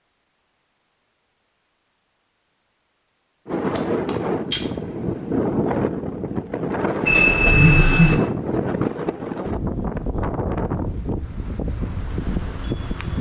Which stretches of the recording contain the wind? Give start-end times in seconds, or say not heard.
3.5-13.1.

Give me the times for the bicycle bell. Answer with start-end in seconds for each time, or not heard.
3.8-4.7, 7.0-8.2.